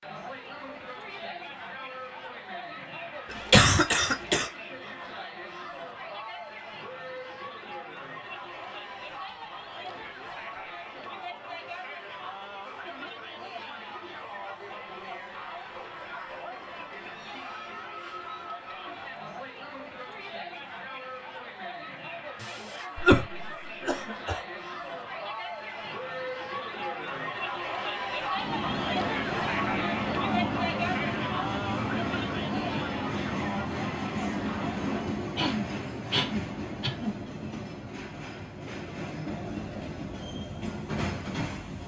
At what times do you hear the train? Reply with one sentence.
You can hear the train from 28.3 to 41.8 s.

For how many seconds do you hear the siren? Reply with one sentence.
The siren can't be heard in this clip.